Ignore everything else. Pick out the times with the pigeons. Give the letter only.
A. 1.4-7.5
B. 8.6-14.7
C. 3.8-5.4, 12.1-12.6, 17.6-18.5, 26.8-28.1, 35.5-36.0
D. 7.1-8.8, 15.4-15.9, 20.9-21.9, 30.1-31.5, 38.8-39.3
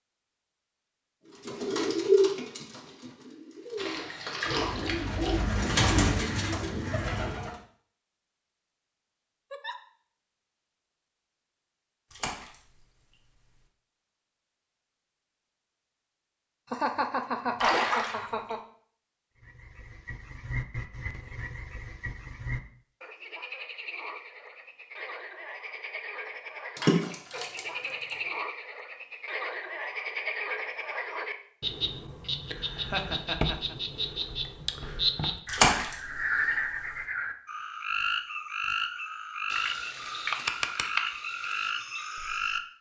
A.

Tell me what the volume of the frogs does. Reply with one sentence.
The loudness of the frogs goes up.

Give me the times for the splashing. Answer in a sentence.
The splashing can be heard from 3.8 to 5.4 s, from 12.1 to 12.6 s, from 17.6 to 18.5 s, from 26.8 to 28.1 s and from 35.5 to 36.0 s.